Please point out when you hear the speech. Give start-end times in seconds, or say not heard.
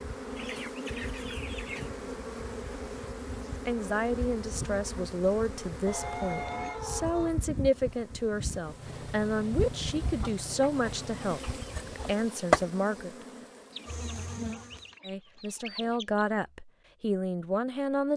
3.6-13.2, 15.1-18.1.